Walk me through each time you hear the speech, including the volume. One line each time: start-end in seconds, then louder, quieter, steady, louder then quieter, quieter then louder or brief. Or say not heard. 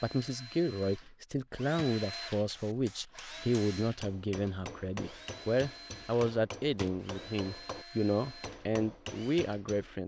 0.0-10.0 steady.